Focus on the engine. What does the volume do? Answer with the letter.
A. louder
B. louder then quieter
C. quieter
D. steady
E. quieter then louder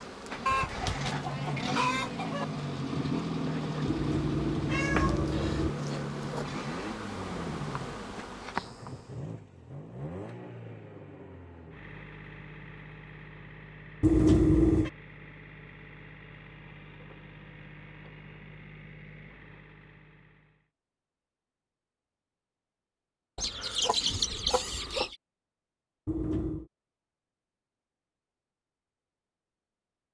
C.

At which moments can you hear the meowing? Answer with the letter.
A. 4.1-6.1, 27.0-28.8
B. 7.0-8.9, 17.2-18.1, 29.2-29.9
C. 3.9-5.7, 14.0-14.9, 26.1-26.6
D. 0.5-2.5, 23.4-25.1
C.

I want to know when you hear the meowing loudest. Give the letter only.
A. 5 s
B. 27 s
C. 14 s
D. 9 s
C.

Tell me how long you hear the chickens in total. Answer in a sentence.
The chickens can be heard for 4 seconds in total.